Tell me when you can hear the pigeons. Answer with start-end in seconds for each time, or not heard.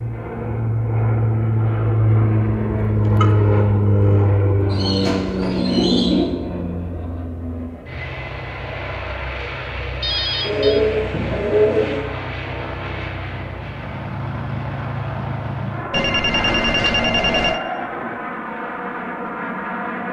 4.7-6.2, 10.4-12.1.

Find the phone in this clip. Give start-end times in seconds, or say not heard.
3.2-4.3, 10.0-10.8, 15.9-17.6.